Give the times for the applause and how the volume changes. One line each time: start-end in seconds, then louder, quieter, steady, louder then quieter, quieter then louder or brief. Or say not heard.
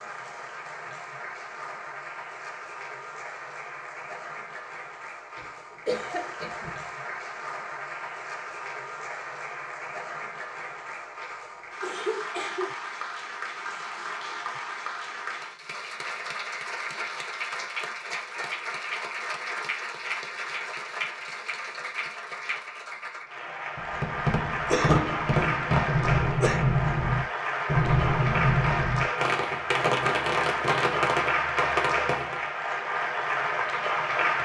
0.0-34.4 louder.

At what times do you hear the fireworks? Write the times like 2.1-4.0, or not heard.
23.8-32.5.